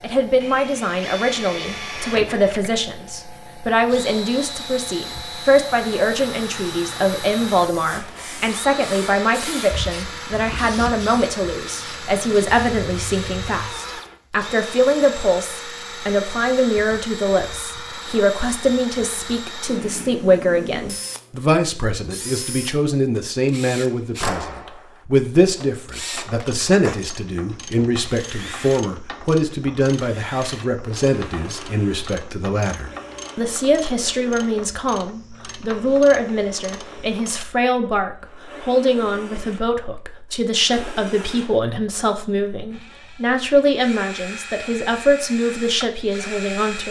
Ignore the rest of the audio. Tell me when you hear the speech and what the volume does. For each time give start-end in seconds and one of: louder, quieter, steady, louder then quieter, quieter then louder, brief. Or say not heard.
0.0-46.8 steady.